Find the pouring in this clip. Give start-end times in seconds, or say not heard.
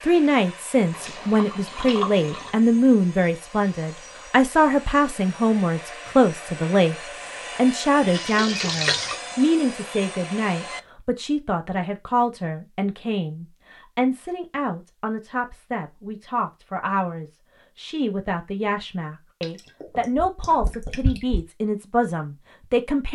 0.9-2.5, 8.1-9.2, 19.4-21.4.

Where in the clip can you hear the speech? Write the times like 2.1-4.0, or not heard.
0.0-7.0, 7.5-23.1.